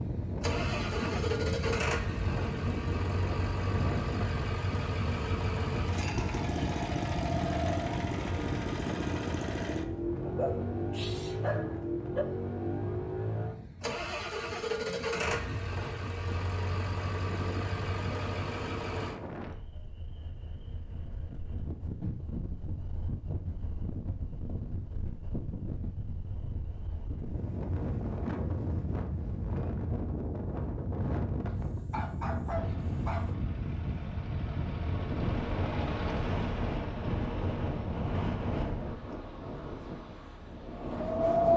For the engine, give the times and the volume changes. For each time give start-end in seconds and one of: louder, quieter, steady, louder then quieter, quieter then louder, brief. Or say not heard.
0.0-19.2 steady
32.5-41.2 louder then quieter.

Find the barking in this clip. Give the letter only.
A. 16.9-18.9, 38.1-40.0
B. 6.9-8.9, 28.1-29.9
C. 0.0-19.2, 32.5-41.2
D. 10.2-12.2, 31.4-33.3
D.